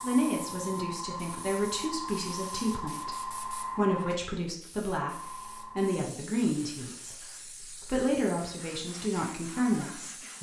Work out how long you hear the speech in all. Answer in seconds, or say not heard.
10 s.